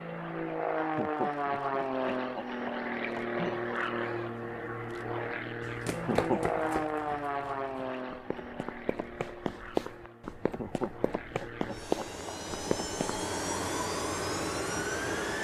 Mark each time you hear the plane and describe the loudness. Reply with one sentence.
You can hear the plane from 0.0 to 15.4 s, getting quieter then louder.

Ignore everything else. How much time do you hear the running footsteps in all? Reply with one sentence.
You can hear the running footsteps for 8 seconds altogether.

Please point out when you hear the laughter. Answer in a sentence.
You can hear the laughter from 0.9 to 3.6 s, from 6.0 to 6.7 s and from 10.6 to 12.3 s.